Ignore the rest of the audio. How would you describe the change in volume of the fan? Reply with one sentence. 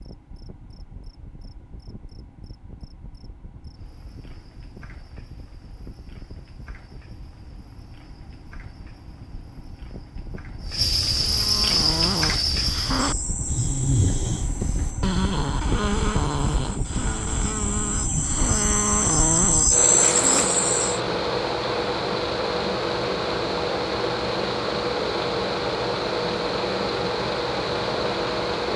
The volume of the fan goes up.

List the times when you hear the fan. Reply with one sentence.
You can hear the fan from 0.0 to 28.7 s.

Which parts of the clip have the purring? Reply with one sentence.
The purring can't be heard in this clip.